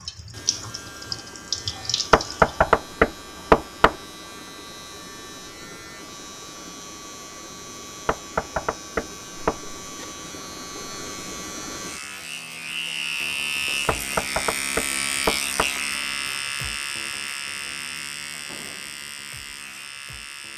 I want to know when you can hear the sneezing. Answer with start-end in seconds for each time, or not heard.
not heard.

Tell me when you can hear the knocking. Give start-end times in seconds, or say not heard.
2.1-4.0, 8.1-9.6, 13.8-15.7.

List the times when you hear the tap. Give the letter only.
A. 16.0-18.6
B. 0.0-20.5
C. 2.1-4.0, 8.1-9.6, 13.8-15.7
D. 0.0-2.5
D.